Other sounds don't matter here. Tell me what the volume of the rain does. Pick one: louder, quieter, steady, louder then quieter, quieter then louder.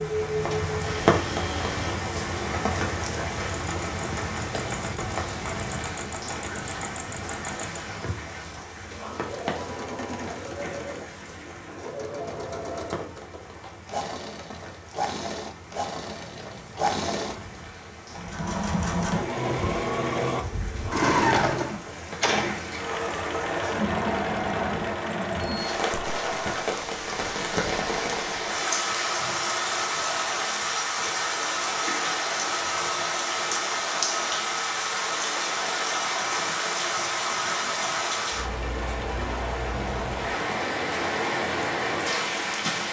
quieter then louder.